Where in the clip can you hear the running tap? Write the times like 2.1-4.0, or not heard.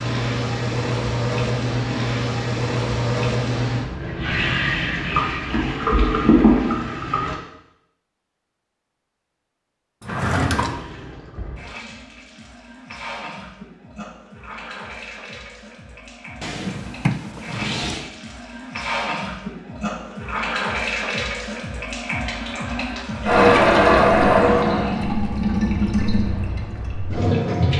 0.0-7.3, 10.1-27.7.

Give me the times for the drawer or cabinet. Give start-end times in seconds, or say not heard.
10.0-10.8, 16.4-18.1.